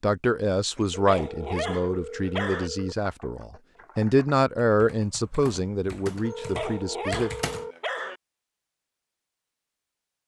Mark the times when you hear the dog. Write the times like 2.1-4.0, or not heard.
0.8-2.7, 6.2-8.2.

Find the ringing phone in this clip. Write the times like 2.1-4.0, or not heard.
1.1-3.0, 6.2-7.8.